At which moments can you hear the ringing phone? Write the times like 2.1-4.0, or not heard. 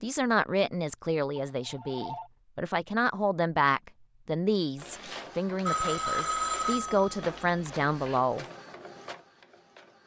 1.4-2.3, 5.7-8.2.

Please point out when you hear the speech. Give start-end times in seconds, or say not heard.
0.0-8.4.